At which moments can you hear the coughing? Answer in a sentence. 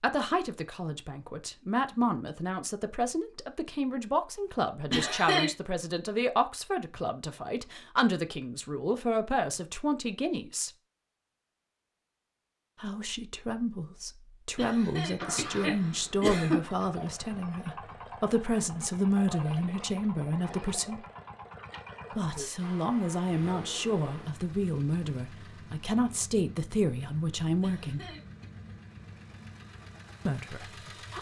You can hear the coughing from 4.9 to 5.5 s, from 14.6 to 16.6 s and from 27.6 to 28.4 s.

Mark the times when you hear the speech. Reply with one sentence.
You can hear the speech from 0.0 to 10.7 s, from 12.8 to 21.0 s, from 22.1 to 28.1 s and from 30.2 to 31.1 s.